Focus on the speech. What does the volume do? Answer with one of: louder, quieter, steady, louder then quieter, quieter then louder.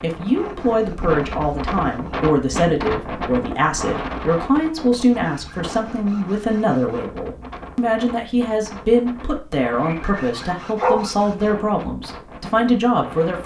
steady.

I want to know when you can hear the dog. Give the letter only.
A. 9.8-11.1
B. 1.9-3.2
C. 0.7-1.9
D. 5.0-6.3
A.